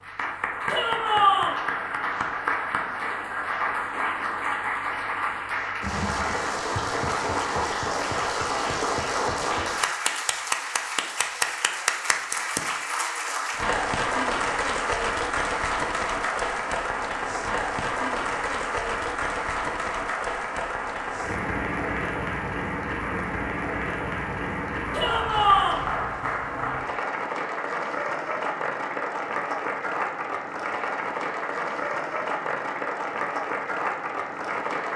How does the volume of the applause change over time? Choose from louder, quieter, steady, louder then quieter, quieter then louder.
steady.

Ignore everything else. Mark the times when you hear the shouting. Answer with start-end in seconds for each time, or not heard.
0.7-1.6, 24.9-25.9.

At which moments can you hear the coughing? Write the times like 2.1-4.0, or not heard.
not heard.